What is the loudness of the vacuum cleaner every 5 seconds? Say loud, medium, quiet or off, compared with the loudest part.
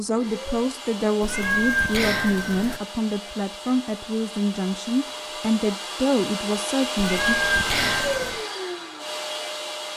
medium, loud.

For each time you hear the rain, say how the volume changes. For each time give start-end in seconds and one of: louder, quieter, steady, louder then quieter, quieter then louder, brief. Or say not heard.
not heard.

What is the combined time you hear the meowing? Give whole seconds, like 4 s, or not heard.
3 s.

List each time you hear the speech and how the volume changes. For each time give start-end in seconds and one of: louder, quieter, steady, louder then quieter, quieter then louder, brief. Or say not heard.
0.0-7.3 steady.